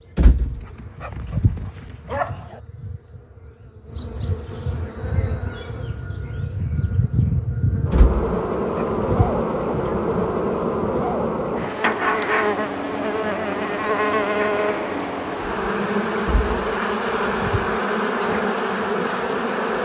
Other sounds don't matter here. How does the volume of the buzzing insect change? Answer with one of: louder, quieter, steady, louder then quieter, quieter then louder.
louder.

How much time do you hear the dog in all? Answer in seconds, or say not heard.
6 s.